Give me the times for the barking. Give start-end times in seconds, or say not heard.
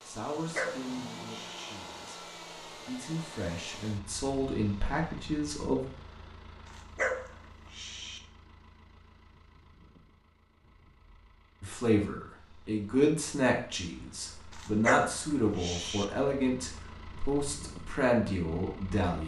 0.3-1.8, 6.7-8.2, 14.5-16.1.